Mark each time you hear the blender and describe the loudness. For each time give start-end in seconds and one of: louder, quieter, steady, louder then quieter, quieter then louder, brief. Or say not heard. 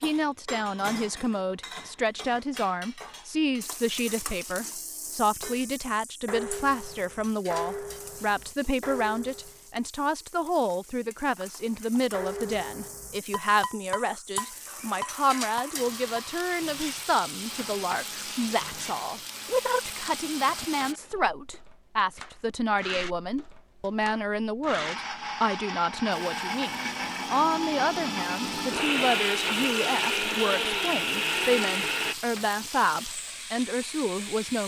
14.0-32.1 louder.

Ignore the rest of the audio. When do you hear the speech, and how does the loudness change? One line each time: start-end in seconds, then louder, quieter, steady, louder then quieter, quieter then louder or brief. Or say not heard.
0.0-34.6 steady.